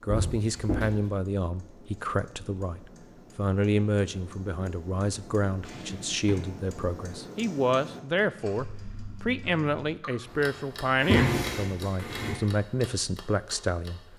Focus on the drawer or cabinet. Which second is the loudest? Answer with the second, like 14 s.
11 s.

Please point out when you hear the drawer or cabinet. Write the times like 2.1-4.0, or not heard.
0.1-0.9, 5.7-6.4, 10.9-12.3.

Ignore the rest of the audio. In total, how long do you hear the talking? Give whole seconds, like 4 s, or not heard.
14 s.